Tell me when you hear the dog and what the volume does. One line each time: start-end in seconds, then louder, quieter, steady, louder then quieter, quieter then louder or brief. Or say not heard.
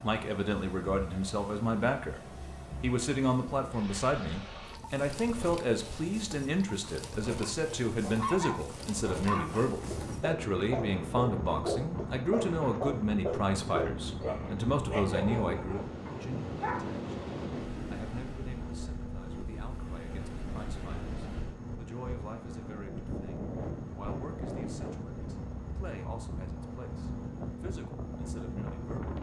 7.3-16.9 steady.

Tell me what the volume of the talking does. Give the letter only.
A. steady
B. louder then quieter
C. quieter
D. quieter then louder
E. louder
C.